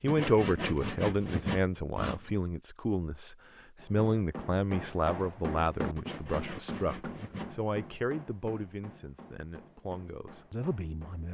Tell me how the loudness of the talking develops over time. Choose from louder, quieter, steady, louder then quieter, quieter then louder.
quieter.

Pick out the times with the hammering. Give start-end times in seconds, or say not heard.
3.8-11.3.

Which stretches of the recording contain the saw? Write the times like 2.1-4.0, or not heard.
0.1-2.4, 6.0-7.5.